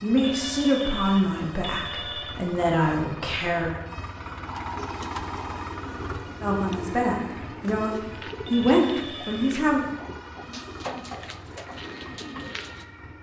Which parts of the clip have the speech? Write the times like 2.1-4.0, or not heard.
0.0-3.7, 6.4-9.8.